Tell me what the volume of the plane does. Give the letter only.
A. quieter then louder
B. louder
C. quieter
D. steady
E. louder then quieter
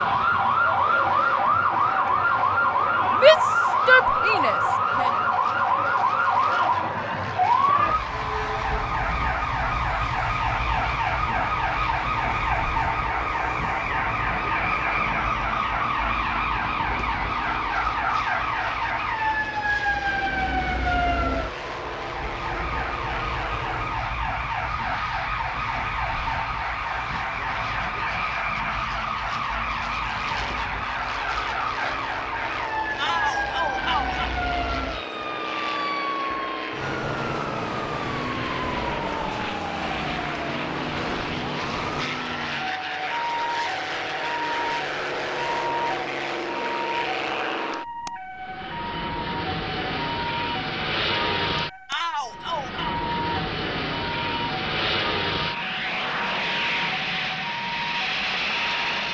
B.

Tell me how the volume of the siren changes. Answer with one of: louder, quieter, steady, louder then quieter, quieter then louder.
quieter.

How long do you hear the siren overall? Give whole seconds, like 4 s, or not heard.
59 s.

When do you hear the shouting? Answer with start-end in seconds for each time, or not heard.
3.1-5.1, 33.0-34.3, 51.9-53.0.